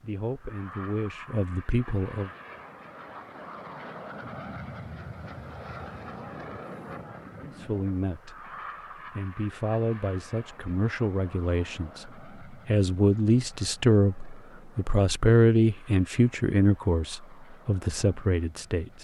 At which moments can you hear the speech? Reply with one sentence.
The speech can be heard from 0.0 to 2.3 s and from 7.4 to 18.9 s.